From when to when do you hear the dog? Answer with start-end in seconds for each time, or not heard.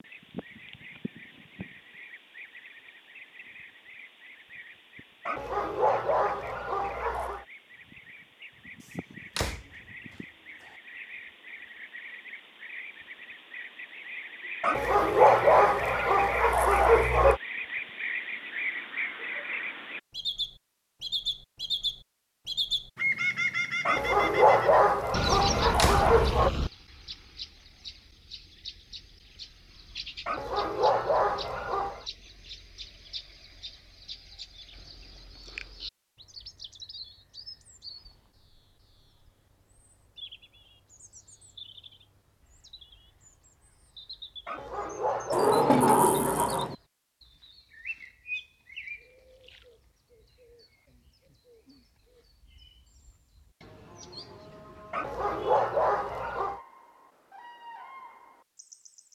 5.2-7.5, 14.6-17.4, 23.9-26.5, 30.2-32.0, 44.5-46.7, 54.9-56.6.